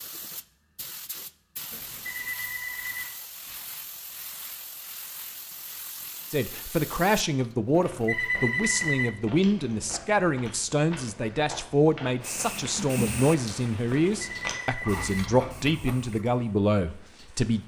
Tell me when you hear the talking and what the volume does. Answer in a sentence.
The talking can be heard from 6.3 to 17.6 s, at a steady volume.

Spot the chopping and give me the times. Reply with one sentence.
The chopping can't be heard in this clip.